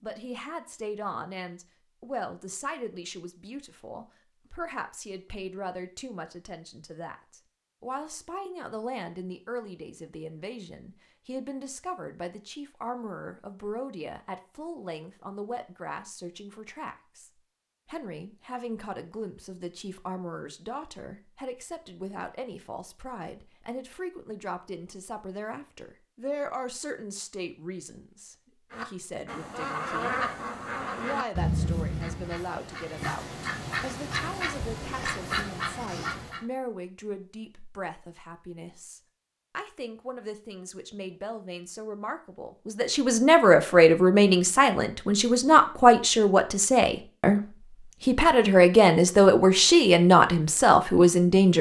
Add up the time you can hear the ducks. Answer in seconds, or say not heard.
8 s.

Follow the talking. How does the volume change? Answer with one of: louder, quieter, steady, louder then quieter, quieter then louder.
louder.